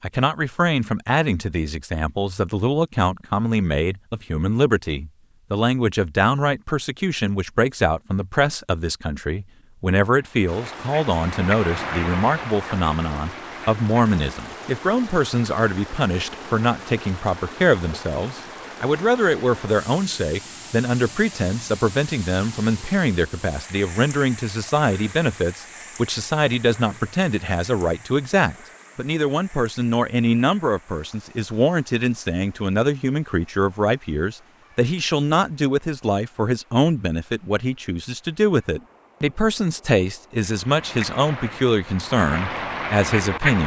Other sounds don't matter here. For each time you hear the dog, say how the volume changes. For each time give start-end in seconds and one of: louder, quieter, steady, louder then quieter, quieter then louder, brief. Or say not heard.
not heard.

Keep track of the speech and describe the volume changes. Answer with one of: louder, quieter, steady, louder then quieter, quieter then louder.
steady.